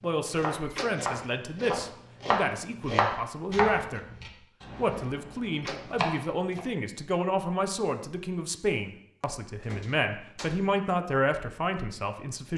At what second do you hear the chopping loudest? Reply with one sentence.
The loudest moment of the chopping is at 3 seconds.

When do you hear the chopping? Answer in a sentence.
You can hear the chopping from 0.0 to 6.7 s.